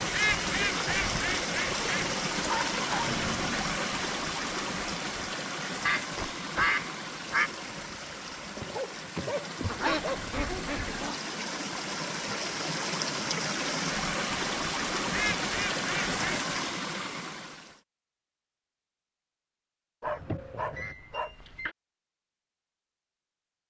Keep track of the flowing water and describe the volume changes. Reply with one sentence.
The volume of the flowing water goes down, then up.